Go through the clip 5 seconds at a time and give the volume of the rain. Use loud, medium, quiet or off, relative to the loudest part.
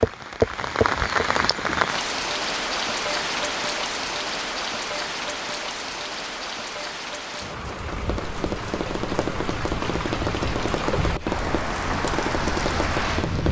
loud, medium, loud.